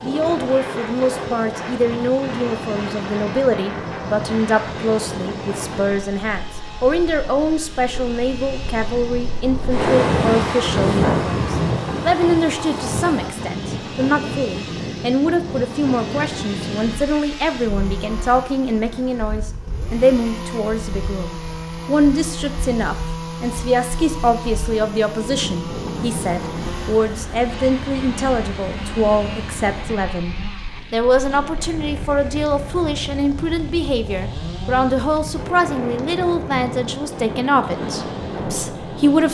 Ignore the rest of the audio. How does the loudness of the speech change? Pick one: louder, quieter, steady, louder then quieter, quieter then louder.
steady.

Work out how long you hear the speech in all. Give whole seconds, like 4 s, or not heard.
39 s.